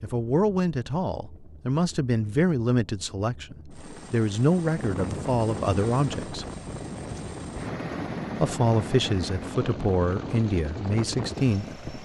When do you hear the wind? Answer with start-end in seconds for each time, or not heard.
4.6-12.0.